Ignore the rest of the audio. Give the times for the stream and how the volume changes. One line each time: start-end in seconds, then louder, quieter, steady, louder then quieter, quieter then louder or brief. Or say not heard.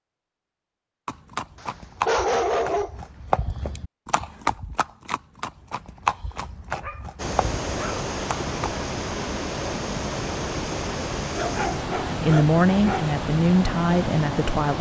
7.2-14.7 steady.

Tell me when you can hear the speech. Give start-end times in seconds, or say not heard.
12.2-14.7.